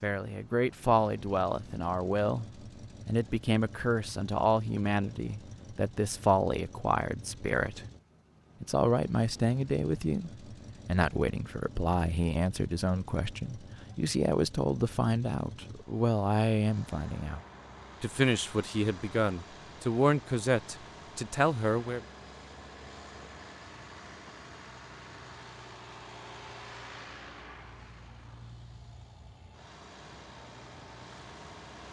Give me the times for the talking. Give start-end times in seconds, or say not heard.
0.0-2.5, 3.0-7.8, 8.6-17.4, 18.0-22.0.